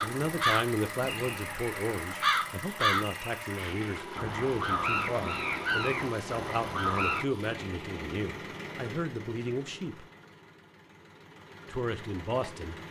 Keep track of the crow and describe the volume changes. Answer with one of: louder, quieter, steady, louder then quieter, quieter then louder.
quieter then louder.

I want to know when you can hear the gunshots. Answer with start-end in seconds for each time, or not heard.
not heard.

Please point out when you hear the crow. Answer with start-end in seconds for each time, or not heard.
0.0-7.2.